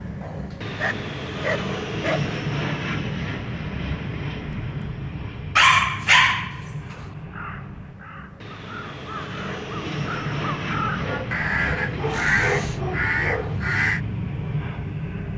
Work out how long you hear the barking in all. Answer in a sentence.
You can hear the barking for 6 seconds altogether.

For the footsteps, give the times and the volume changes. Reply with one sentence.
You can't hear the footsteps here.